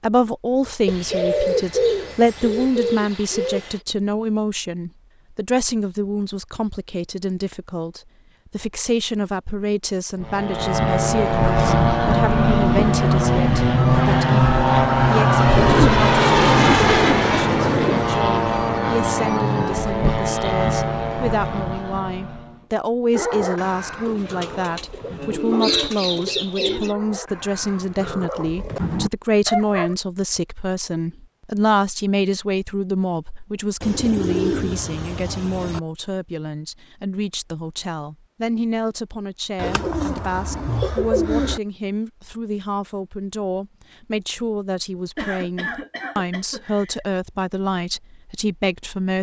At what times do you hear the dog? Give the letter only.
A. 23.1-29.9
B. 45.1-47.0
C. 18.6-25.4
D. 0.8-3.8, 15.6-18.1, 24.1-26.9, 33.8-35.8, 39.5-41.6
A.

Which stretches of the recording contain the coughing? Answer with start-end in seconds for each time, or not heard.
45.1-47.0.